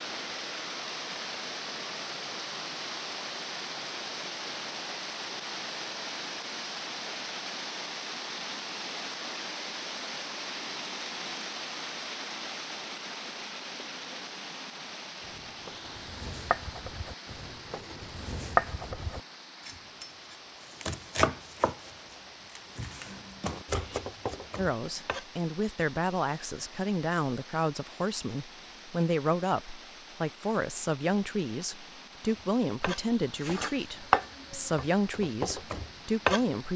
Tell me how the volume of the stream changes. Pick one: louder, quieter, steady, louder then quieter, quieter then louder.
quieter.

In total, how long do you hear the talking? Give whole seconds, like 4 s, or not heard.
12 s.